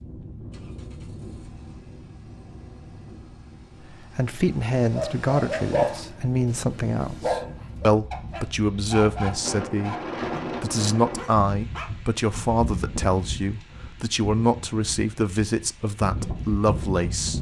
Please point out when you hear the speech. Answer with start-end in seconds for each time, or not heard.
3.9-9.9, 10.6-17.3.